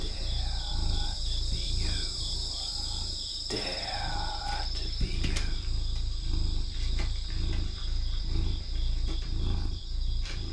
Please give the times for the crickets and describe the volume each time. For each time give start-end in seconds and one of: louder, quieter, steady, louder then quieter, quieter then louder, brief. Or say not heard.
0.0-10.4 quieter.